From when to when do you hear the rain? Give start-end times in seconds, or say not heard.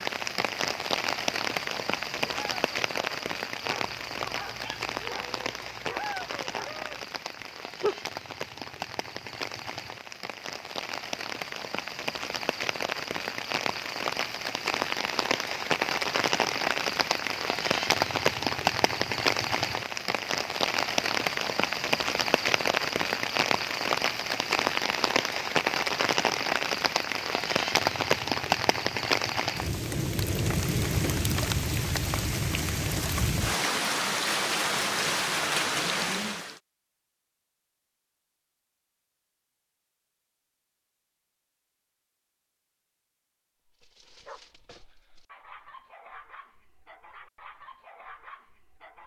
0.0-36.5.